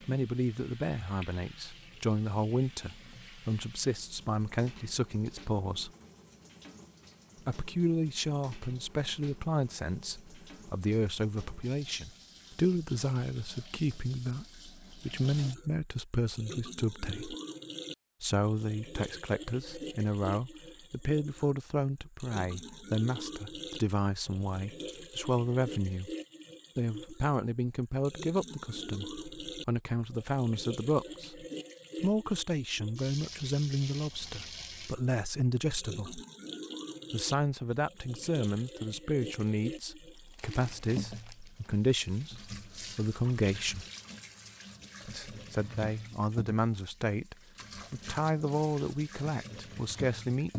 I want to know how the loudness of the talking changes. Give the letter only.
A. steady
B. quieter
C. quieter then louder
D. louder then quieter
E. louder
A.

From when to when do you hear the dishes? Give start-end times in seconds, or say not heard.
not heard.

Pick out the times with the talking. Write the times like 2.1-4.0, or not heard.
0.1-5.9, 7.5-17.4, 18.2-26.1, 26.8-36.2, 37.1-43.9, 45.0-50.5.